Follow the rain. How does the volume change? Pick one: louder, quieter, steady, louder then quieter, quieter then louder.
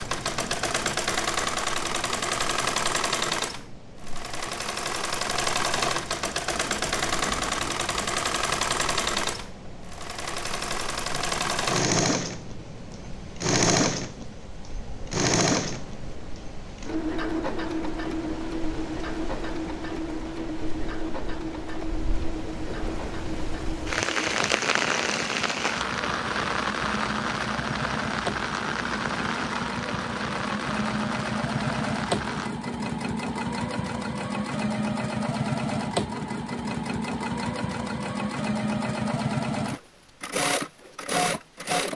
louder.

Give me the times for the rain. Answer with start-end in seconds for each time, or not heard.
0.0-32.5.